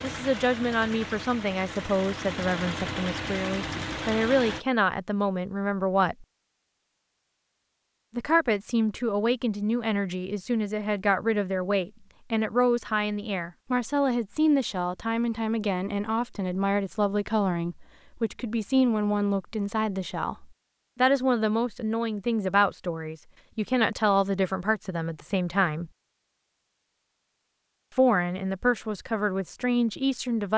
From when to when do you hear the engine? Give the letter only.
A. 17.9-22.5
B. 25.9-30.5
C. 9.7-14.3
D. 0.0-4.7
D.